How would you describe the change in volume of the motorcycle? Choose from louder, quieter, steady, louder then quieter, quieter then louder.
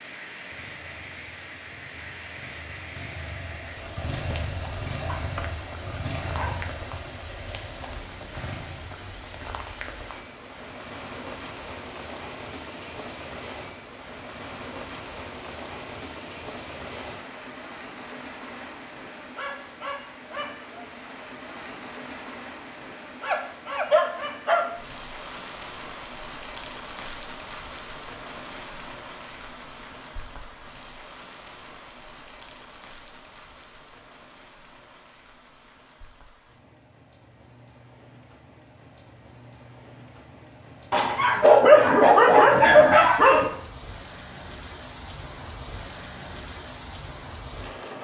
louder then quieter.